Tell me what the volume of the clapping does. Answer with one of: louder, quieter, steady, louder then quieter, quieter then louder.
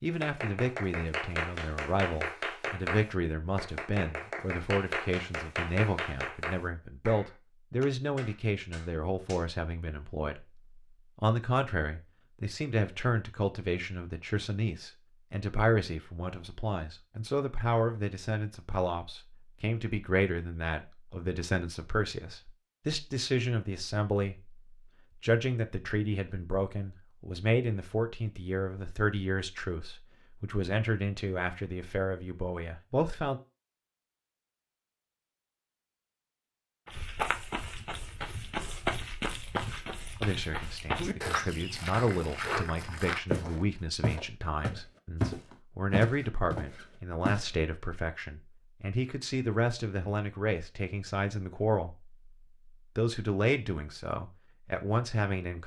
quieter.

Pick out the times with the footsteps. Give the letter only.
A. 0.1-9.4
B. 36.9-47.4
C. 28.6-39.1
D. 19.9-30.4
B.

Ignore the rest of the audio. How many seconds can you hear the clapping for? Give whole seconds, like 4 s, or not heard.
9 s.